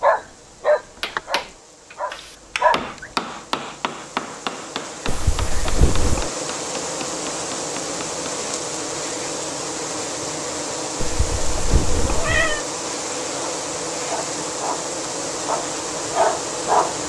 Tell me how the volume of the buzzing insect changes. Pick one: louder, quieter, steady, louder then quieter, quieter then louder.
louder.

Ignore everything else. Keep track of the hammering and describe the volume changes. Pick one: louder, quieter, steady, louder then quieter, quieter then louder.
louder then quieter.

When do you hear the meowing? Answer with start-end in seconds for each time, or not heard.
5.0-6.3, 11.0-12.6.